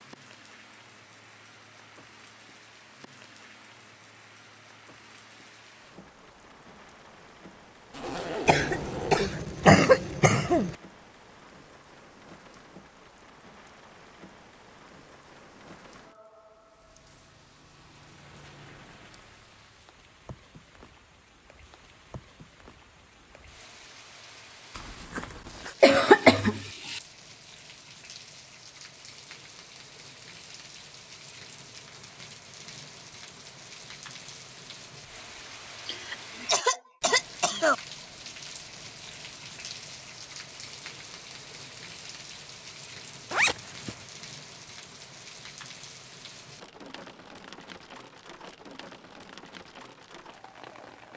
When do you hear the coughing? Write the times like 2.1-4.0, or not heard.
8.4-10.8, 25.8-27.0, 35.9-37.8.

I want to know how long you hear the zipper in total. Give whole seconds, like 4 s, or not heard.
3 s.